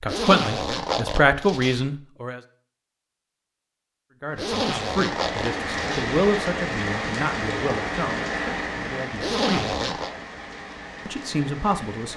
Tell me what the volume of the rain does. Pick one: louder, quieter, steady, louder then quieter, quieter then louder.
quieter.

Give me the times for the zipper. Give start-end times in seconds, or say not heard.
0.1-1.9, 4.3-6.2, 9.2-10.1.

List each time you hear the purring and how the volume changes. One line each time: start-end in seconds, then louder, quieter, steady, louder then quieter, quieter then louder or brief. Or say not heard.
not heard.